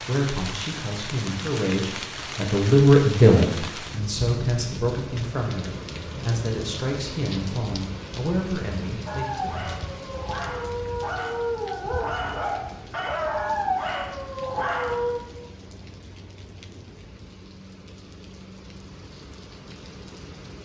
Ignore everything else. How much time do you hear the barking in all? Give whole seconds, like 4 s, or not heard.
6 s.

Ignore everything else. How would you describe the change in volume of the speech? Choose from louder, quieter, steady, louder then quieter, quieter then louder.
louder then quieter.